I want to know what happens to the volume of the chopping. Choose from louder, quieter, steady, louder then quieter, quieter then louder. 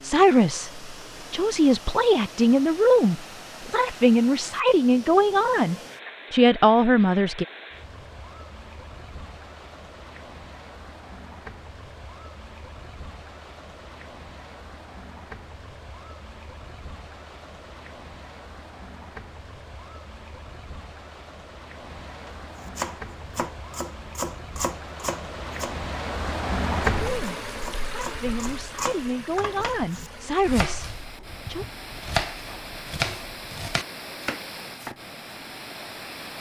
quieter then louder.